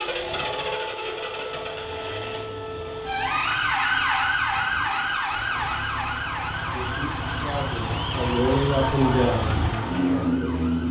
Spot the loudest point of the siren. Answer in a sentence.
The volume of the siren peaks at 4 seconds.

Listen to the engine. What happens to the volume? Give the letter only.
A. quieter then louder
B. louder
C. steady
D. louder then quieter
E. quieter
A.